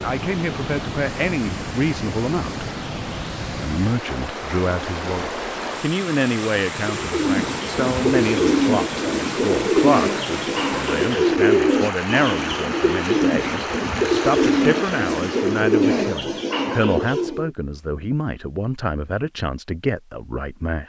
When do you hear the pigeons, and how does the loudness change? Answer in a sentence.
The pigeons can be heard from 6.8 to 17.5 s, at a steady volume.